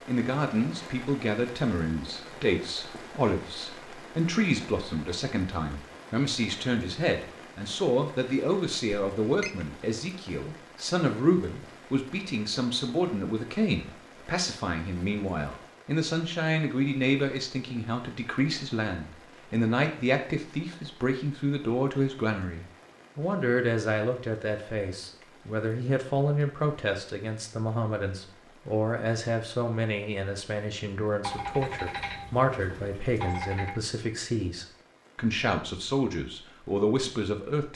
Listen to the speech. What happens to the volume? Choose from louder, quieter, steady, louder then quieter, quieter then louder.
steady.